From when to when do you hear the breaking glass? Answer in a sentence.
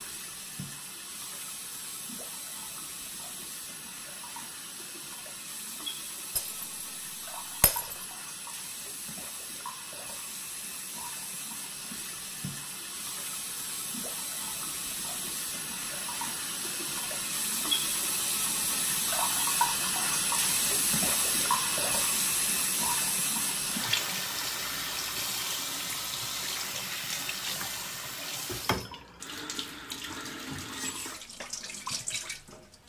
The breaking glass can be heard from 6.3 to 6.8 s and from 7.6 to 8.1 s.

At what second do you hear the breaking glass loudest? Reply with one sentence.
The loudest moment of the breaking glass is at 8 seconds.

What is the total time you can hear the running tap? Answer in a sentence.
The running tap can be heard for 33 seconds in total.